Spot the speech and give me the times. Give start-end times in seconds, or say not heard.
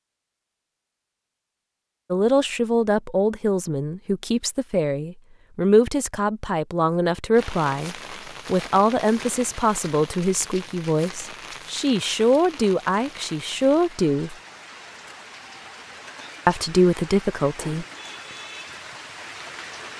2.1-14.3, 16.4-17.9.